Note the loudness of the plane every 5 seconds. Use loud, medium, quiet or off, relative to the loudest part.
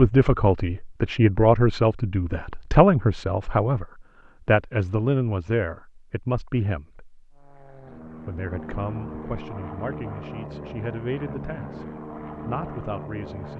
off, loud, loud.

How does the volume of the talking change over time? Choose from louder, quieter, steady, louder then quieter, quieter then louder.
quieter.